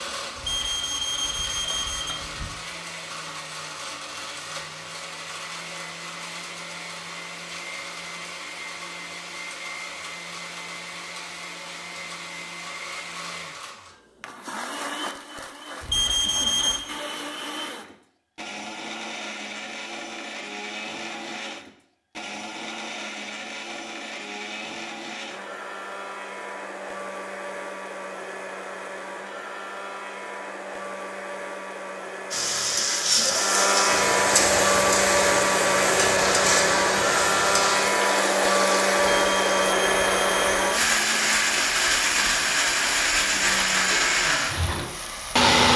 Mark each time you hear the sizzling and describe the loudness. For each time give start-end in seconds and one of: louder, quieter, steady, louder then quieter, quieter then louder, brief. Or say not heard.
32.3-45.5 quieter.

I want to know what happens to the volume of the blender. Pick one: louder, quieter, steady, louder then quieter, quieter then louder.
louder.